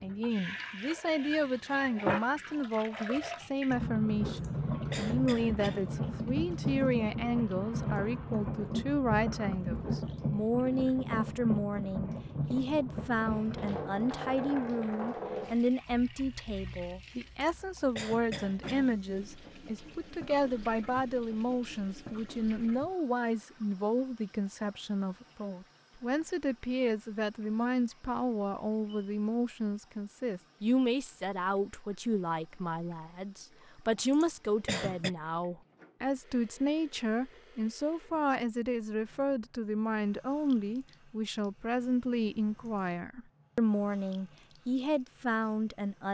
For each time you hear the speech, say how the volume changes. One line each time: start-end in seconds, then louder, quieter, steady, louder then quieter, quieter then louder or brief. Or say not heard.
0.0-46.0 steady.